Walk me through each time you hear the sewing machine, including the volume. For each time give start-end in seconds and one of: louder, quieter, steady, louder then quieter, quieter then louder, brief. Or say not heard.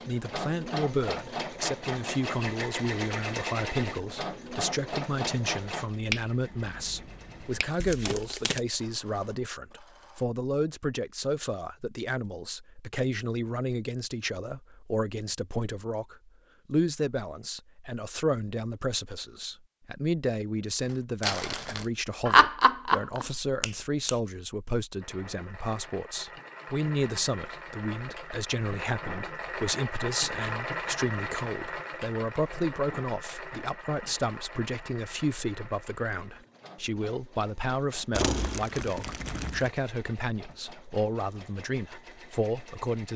0.0-10.2 quieter
25.0-43.1 louder then quieter.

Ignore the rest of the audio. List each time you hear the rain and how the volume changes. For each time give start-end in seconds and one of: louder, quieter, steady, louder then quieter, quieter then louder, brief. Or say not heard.
not heard.